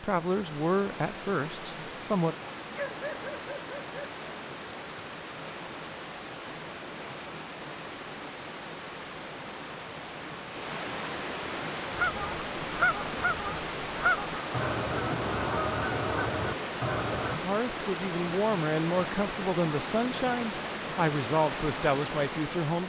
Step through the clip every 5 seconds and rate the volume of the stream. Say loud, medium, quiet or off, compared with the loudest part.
medium, medium, loud, loud, loud.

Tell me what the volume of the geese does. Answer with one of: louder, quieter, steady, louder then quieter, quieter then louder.
steady.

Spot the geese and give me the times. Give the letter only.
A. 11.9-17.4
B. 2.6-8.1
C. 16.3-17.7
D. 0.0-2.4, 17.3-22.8
A.